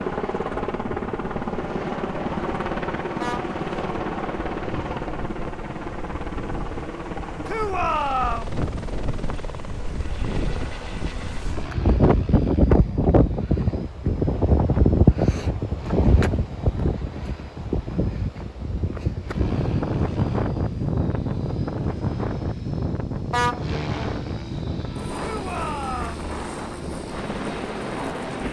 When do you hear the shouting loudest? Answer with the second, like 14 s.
8 s.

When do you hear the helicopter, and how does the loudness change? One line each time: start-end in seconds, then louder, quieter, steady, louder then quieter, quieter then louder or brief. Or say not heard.
0.0-28.4 quieter then louder.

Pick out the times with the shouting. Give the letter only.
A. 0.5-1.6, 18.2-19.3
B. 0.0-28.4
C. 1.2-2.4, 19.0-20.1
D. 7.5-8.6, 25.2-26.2
D.